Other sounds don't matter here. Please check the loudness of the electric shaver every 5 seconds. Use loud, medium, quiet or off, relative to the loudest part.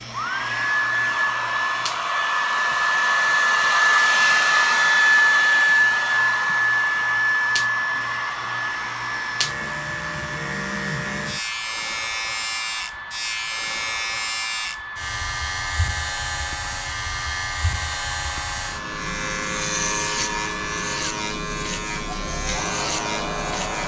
medium, medium, loud, loud, loud.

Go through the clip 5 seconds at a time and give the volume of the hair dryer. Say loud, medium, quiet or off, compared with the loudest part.
loud, loud, quiet, quiet, quiet.